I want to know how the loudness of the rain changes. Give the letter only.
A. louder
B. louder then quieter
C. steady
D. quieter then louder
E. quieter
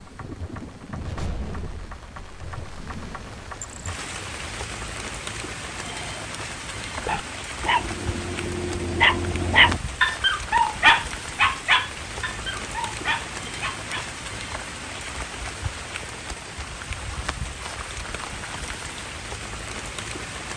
C.